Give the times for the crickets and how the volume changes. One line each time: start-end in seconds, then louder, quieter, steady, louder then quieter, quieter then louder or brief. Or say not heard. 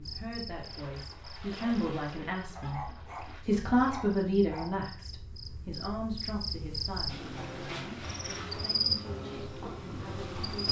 0.0-10.6 quieter then louder.